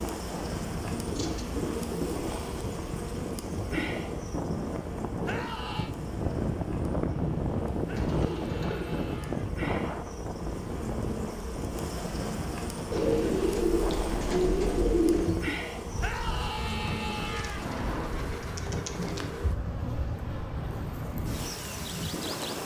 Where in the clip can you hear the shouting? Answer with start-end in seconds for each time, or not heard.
5.2-6.0, 7.8-9.5, 16.0-17.6.